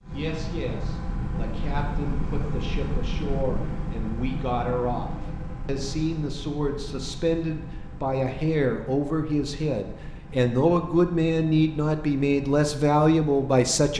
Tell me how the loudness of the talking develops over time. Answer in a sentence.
The volume of the talking goes up.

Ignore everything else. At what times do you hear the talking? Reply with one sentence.
You can hear the talking from 0.0 to 13.9 s.